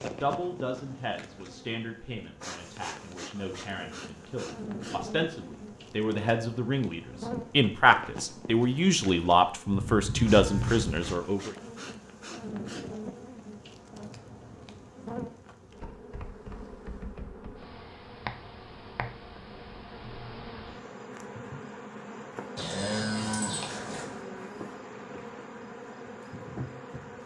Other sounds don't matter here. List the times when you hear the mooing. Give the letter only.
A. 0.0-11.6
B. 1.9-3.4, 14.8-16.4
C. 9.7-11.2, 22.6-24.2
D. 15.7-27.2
C.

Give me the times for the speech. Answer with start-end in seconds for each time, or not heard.
0.0-11.6.